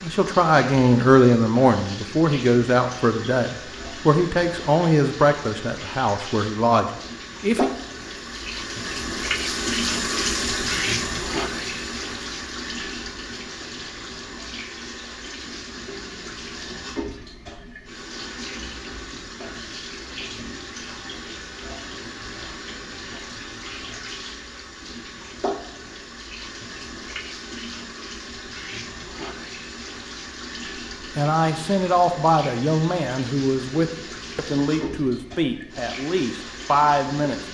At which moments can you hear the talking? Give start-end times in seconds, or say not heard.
0.0-7.7, 31.1-37.4.